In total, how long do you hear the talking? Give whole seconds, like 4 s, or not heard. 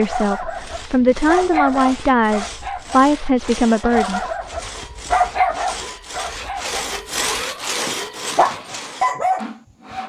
4 s.